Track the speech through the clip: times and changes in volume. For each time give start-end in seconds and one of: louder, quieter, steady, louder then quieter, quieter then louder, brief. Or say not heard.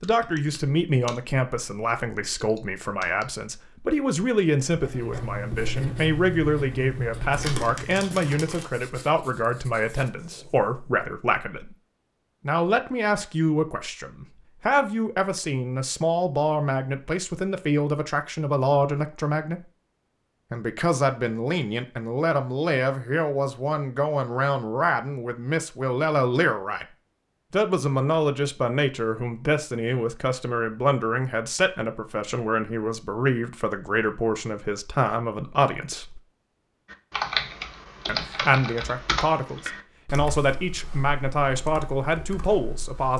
0.0-11.8 steady
12.4-19.6 steady
20.5-26.9 steady
27.5-36.2 steady
38.0-43.1 steady.